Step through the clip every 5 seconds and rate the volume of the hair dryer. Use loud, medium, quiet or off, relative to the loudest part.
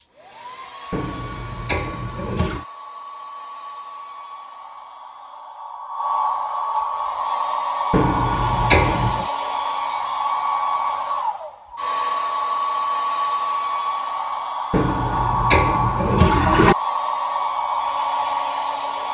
quiet, loud, loud, loud.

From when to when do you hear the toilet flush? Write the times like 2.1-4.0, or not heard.
0.9-2.6, 7.9-9.2, 14.7-16.8.